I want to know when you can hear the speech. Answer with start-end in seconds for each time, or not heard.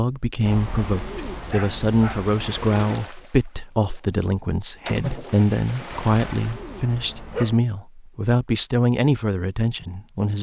0.0-10.3.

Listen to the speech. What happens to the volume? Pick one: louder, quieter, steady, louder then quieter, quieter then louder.
steady.